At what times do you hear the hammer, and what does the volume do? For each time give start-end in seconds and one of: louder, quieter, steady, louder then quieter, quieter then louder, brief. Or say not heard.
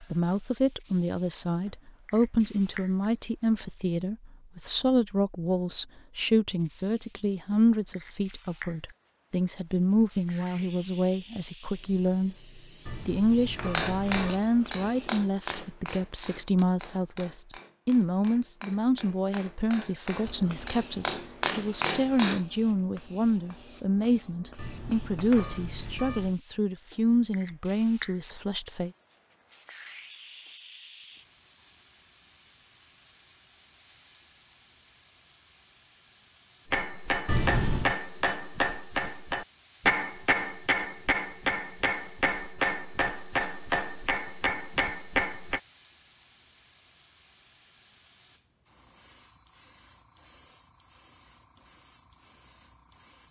13.6-22.4 quieter then louder
36.7-45.6 steady.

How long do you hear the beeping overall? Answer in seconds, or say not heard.
4 s.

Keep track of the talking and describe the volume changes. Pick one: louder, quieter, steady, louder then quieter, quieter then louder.
steady.